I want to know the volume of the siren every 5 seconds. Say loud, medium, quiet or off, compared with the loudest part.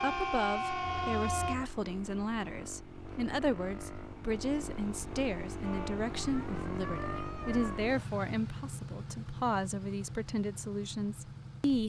loud, medium, off.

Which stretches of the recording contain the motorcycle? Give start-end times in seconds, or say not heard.
0.0-11.8.